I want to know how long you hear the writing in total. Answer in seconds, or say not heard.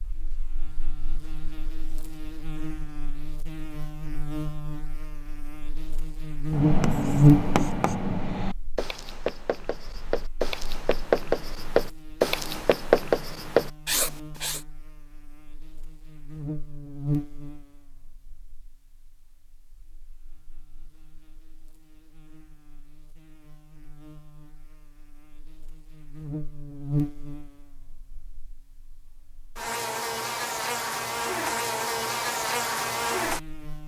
8 s.